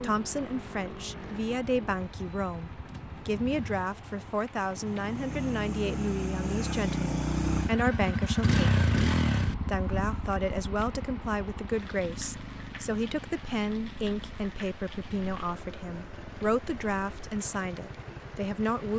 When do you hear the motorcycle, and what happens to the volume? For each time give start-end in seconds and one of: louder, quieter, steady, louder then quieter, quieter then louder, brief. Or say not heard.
0.0-18.9 louder then quieter.